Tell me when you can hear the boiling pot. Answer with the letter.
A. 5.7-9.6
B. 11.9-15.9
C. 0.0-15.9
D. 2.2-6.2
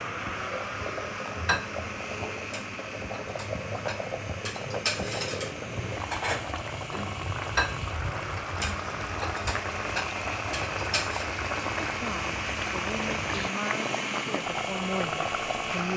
C.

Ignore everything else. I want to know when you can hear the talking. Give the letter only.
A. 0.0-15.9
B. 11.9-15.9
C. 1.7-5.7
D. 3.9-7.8
B.